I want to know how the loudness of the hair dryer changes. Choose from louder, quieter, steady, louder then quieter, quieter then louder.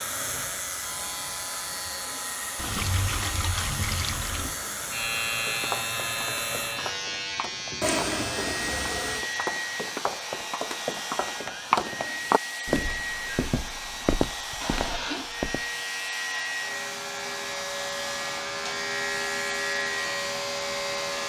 steady.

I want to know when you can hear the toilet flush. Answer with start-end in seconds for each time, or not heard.
2.5-4.5, 7.8-9.2, 14.6-15.3.